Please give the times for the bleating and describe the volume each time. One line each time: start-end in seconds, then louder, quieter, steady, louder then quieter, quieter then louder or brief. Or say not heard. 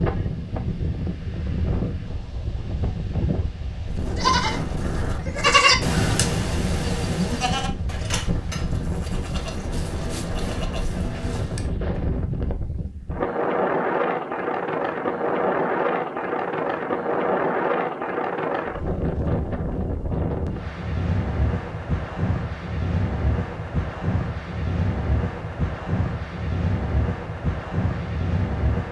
4.0-11.7 quieter.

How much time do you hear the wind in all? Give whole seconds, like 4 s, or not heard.
29 s.